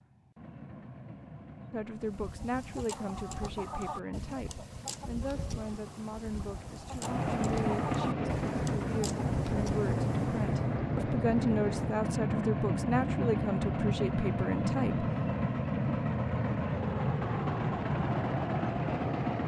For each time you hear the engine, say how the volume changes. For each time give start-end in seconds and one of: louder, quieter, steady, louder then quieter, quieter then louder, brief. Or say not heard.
0.0-19.4 louder.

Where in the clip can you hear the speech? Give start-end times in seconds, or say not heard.
1.7-15.1.